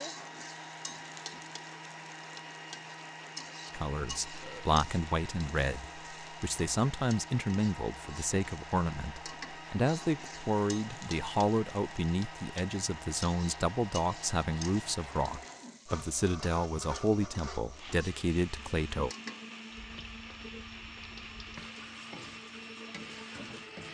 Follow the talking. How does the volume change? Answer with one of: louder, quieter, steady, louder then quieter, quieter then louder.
steady.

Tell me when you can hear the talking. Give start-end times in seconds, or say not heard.
3.7-19.1.